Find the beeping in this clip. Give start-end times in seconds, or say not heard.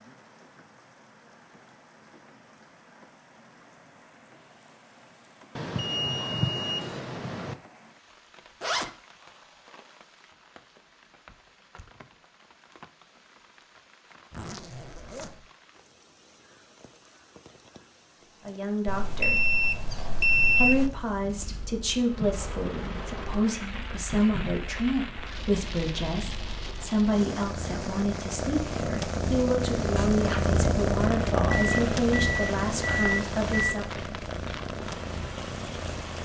5.5-7.5, 18.9-20.9, 31.5-33.8.